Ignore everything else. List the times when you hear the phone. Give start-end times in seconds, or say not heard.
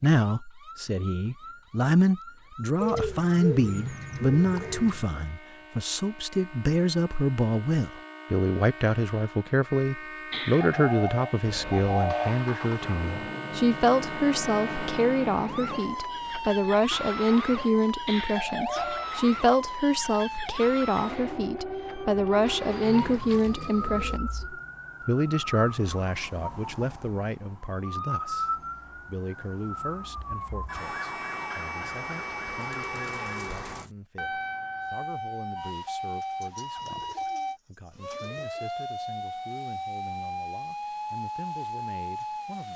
not heard.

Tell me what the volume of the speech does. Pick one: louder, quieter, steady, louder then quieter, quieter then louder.
quieter.